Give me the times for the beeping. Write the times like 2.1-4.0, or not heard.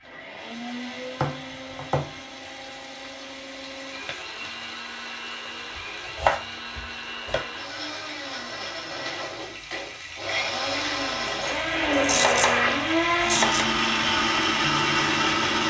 not heard.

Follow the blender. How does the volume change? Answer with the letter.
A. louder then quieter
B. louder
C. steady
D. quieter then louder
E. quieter
B.